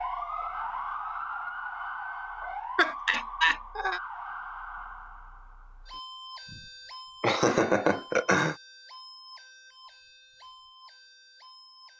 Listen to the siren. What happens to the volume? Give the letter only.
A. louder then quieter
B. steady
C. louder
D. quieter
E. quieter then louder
D.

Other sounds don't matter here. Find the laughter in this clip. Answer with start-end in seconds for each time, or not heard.
2.8-4.0, 7.2-8.6.